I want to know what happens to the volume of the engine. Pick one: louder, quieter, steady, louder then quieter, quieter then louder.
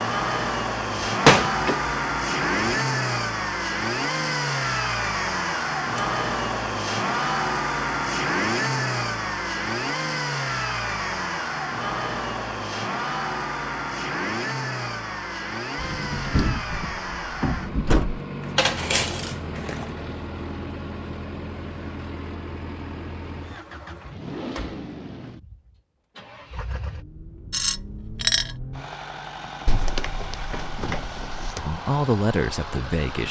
quieter.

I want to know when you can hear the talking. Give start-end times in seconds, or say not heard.
31.6-33.2.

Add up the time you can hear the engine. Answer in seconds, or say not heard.
33 s.